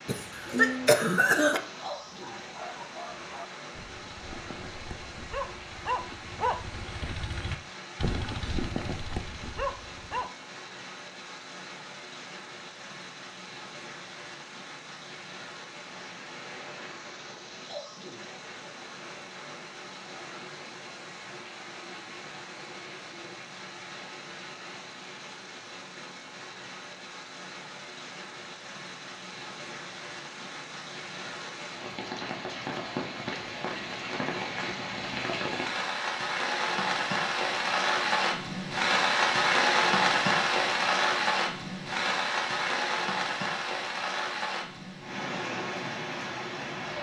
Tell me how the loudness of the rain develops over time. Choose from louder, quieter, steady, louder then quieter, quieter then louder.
louder.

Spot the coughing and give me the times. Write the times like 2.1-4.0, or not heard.
0.1-1.6.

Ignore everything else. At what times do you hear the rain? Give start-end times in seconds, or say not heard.
0.0-46.9.